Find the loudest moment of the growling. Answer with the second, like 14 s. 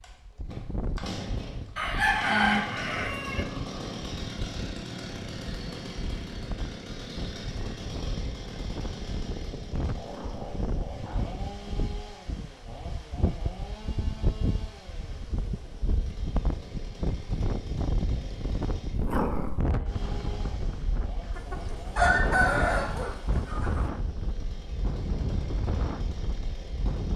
19 s.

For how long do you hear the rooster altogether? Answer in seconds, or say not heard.
4 s.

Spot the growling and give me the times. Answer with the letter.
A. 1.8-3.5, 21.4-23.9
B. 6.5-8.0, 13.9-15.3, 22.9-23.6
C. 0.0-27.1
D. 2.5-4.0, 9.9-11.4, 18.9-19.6
D.